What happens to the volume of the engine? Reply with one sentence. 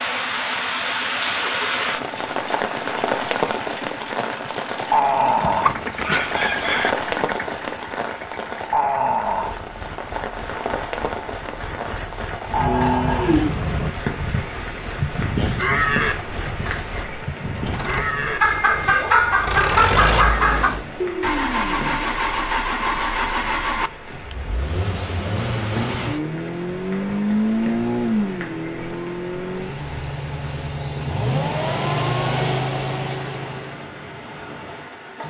The volume of the engine goes up.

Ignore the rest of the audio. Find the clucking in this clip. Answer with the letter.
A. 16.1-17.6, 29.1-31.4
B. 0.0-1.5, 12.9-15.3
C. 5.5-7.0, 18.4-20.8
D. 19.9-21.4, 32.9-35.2
C.